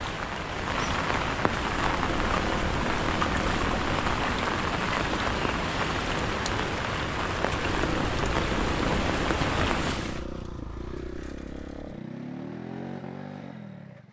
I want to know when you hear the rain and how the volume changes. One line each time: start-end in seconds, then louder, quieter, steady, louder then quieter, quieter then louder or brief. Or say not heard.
0.0-10.2 steady.